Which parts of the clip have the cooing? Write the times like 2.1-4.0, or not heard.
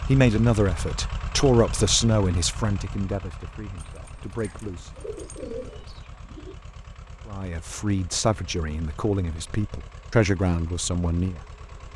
4.4-6.5.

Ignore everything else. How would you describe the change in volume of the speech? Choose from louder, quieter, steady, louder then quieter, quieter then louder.
quieter then louder.